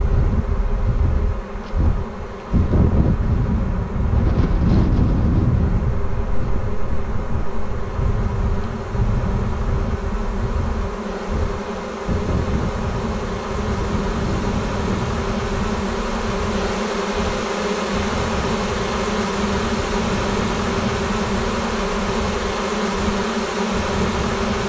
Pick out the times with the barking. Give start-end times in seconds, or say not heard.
not heard.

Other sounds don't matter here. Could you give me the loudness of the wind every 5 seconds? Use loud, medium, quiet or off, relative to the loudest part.
loud, loud, medium, medium, medium.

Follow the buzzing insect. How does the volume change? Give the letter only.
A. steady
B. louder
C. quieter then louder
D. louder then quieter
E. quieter
B.